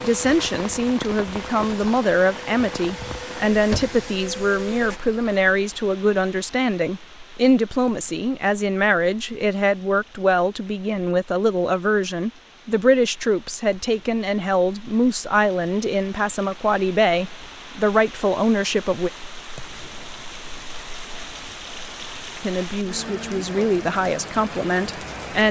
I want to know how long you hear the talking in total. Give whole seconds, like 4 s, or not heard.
22 s.